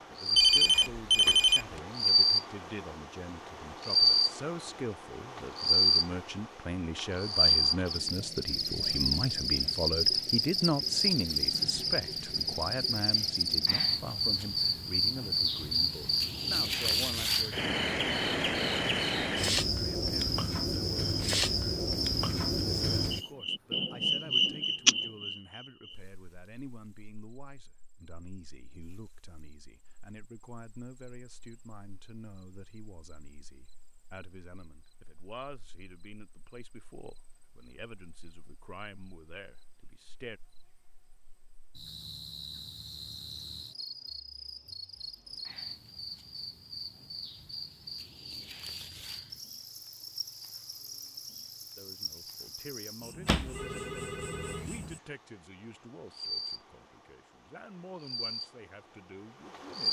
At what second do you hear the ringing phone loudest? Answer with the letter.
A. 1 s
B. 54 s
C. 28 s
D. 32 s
A.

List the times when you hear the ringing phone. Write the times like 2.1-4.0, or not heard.
0.3-1.8, 53.2-54.6.